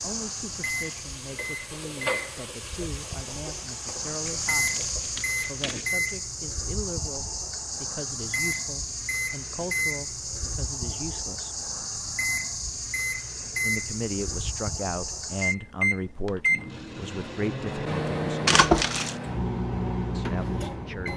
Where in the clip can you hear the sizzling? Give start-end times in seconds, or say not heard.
0.0-5.5.